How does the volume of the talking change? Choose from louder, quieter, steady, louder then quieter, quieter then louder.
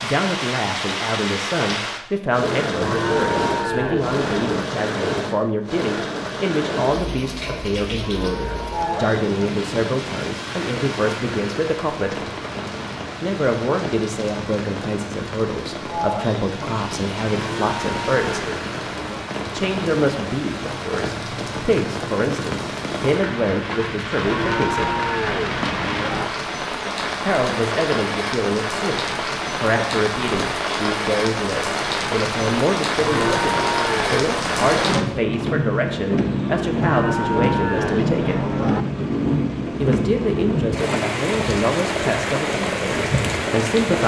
steady.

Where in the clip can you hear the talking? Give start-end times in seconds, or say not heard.
0.0-12.3, 13.2-18.4, 19.5-24.9, 27.2-38.5, 39.8-44.0.